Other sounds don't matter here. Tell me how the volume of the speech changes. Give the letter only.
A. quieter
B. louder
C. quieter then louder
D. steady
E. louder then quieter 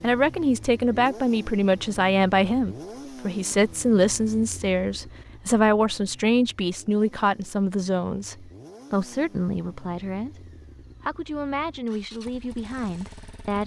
A.